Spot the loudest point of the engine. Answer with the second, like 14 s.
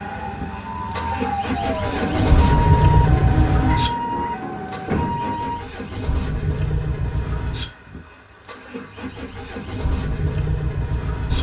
3 s.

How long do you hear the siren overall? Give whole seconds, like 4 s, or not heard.
6 s.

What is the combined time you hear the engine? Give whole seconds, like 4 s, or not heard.
11 s.